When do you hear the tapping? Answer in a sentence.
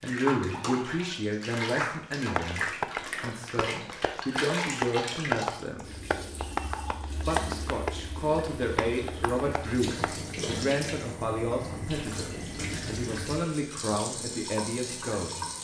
You can hear the tapping from 2.4 to 10.1 s.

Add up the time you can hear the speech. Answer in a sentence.
You can hear the speech for 14 seconds altogether.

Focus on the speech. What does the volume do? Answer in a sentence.
The volume of the speech stays about the same.